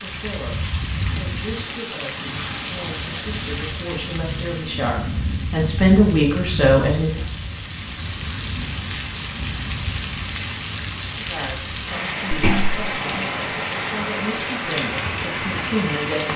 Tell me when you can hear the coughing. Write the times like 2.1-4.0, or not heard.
12.3-12.9.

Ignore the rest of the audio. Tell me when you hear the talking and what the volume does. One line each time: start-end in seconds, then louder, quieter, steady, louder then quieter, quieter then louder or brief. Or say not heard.
0.0-7.2 louder
11.2-16.3 louder.